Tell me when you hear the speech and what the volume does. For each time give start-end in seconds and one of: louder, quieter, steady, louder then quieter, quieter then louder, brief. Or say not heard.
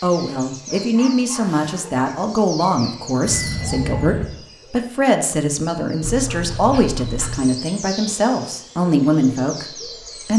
0.0-10.3 steady.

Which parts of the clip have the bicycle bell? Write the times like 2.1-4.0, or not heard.
3.2-4.2.